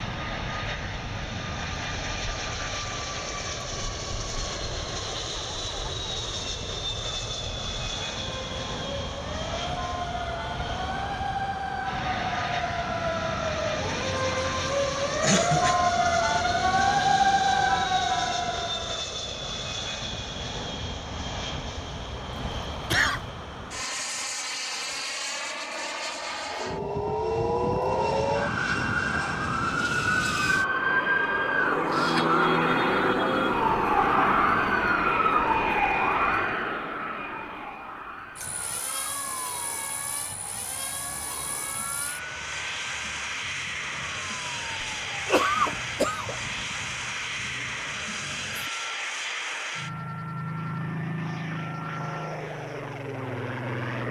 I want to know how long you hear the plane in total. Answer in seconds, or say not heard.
54 s.